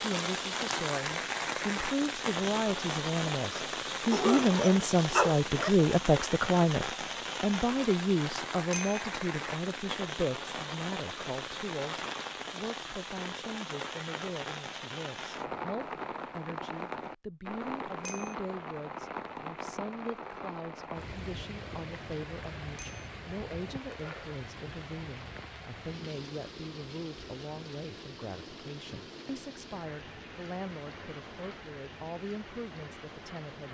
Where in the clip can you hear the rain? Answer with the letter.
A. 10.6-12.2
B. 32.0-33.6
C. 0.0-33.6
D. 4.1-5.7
C.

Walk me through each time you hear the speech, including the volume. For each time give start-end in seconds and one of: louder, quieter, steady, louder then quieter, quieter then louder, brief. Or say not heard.
0.0-33.6 quieter.